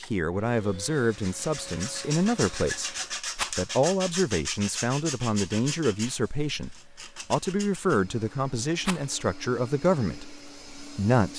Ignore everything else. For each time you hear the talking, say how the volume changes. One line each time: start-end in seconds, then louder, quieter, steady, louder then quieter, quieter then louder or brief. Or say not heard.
0.0-11.3 steady.